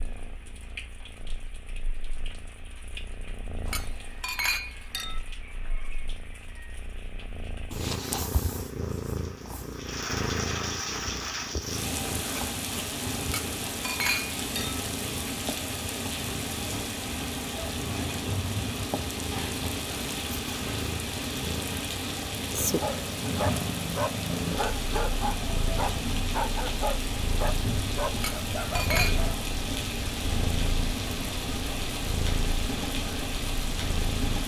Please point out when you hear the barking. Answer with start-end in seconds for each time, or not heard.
22.6-29.4.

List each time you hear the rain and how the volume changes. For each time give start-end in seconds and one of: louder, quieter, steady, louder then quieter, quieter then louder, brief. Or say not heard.
0.0-34.4 louder.